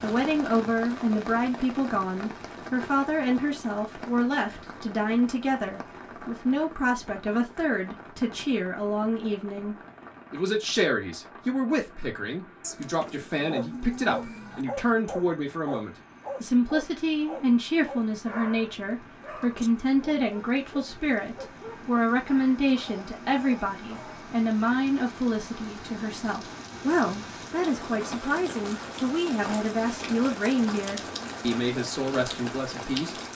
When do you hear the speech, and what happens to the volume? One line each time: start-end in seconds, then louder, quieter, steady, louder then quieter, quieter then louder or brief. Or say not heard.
0.0-33.1 steady.